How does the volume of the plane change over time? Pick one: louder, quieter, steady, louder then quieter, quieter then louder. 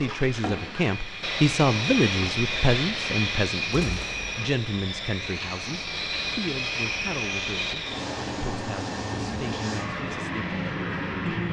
steady.